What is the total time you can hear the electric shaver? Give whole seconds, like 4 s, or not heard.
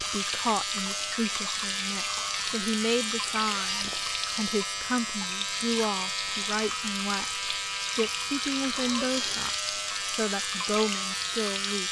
12 s.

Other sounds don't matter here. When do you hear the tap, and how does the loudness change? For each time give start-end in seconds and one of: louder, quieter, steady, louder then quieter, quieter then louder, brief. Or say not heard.
0.0-11.8 steady.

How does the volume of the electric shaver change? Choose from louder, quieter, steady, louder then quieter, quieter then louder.
steady.